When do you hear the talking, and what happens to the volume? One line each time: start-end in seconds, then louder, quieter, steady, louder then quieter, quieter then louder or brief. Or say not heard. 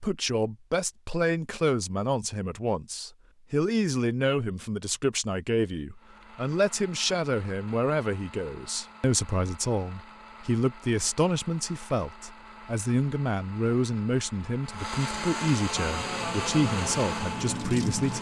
0.0-18.1 steady.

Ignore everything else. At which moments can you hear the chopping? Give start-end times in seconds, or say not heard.
not heard.